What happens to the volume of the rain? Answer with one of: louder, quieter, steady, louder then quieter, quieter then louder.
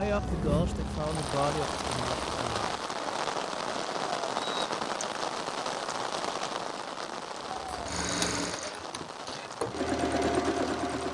quieter.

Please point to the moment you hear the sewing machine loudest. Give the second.
10 s.